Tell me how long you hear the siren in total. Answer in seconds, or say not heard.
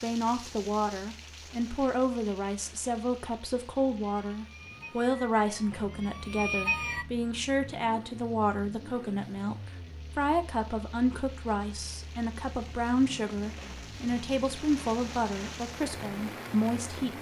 3 s.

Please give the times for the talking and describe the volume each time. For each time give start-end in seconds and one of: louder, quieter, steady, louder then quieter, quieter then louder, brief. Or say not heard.
0.0-17.1 steady.